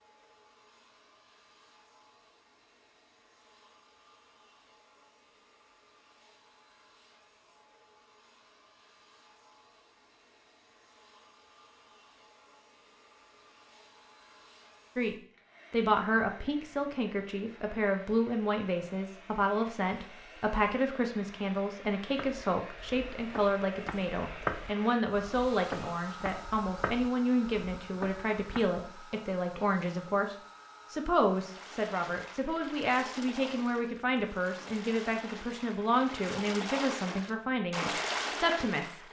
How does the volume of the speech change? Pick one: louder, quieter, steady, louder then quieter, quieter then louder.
steady.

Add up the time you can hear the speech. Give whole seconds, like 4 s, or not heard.
24 s.